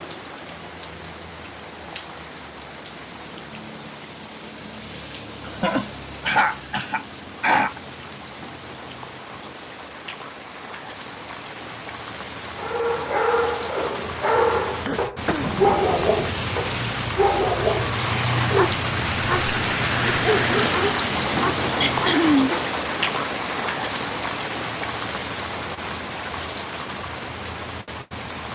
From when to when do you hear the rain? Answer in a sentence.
You can hear the rain from 0.0 to 28.4 s.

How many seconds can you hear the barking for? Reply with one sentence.
The barking can be heard for 10 seconds in total.